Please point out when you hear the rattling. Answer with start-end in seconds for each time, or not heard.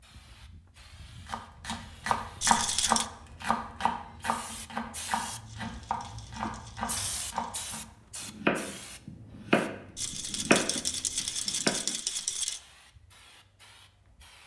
2.4-3.1, 5.5-7.7, 9.9-12.6.